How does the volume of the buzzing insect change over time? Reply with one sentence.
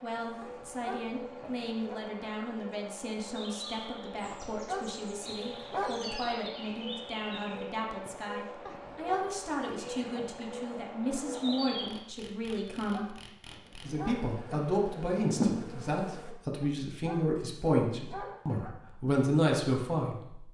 The volume of the buzzing insect goes up.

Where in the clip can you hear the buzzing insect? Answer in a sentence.
You can hear the buzzing insect from 0.0 to 16.4 s.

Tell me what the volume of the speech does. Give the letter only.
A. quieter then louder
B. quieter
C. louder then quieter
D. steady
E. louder
E.